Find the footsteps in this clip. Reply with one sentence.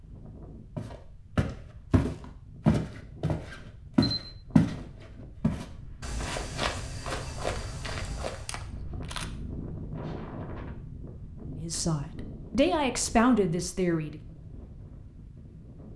You can hear the footsteps from 0.8 to 8.7 s.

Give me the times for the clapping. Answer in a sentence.
The clapping can't be heard in this clip.